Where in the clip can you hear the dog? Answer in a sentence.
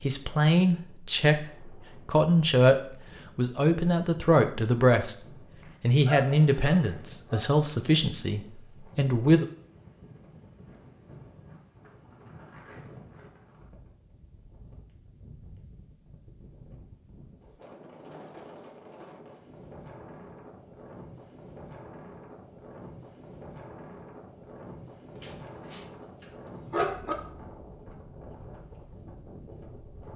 You can hear the dog from 6.0 to 7.5 s and from 25.1 to 27.1 s.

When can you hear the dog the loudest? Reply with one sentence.
The loudest moment of the dog is at 27 seconds.